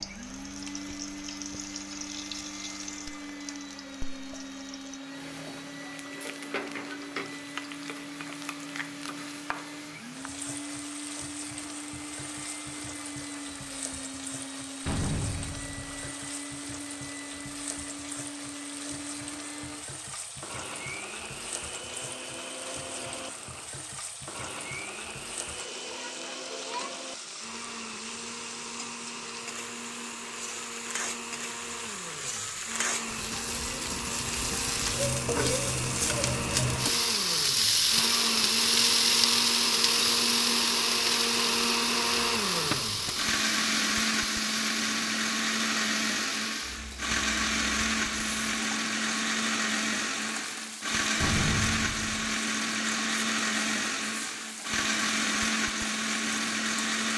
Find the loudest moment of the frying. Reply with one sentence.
The loudest moment of the frying is at 39 seconds.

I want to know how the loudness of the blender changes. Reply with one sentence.
The loudness of the blender goes up.